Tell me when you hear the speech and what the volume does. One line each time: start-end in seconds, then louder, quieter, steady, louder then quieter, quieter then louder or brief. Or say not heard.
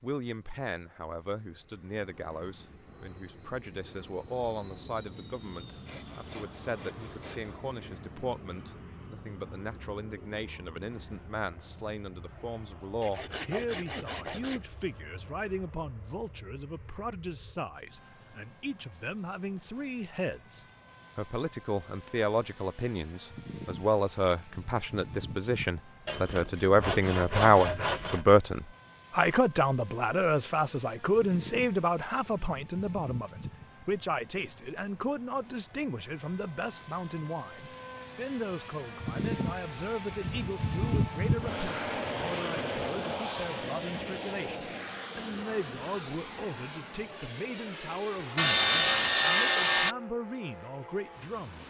0.0-51.6 louder then quieter.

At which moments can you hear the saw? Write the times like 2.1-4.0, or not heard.
5.8-7.7, 13.0-14.7, 26.1-28.2, 48.4-50.0.